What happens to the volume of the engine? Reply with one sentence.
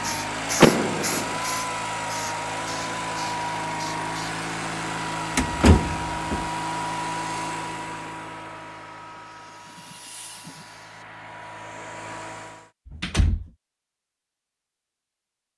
The loudness of the engine goes down.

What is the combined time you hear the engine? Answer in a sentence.
The engine can be heard for 13 seconds in total.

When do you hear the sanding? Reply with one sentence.
The sanding can't be heard in this clip.